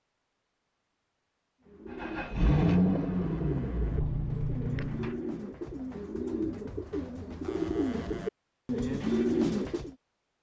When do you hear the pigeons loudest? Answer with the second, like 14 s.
9 s.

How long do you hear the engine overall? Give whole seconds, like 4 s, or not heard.
3 s.